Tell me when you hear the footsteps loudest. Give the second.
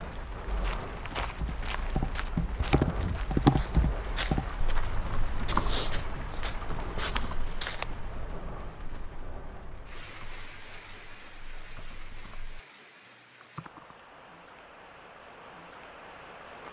6 s.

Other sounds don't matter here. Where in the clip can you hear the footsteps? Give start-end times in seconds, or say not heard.
0.5-7.8.